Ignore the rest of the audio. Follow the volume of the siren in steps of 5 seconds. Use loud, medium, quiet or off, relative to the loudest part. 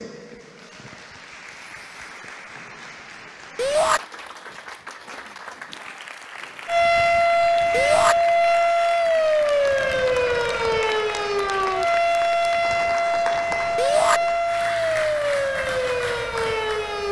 off, loud, loud, medium.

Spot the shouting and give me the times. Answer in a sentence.
The shouting can be heard from 3.5 to 4.0 s, from 7.7 to 8.2 s and from 13.8 to 14.2 s.